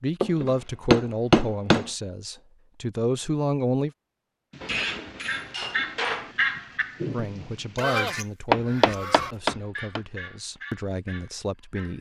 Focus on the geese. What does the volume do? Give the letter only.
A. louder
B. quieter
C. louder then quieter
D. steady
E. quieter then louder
B.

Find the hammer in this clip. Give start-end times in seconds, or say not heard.
0.2-1.9, 4.6-6.3, 8.5-10.0.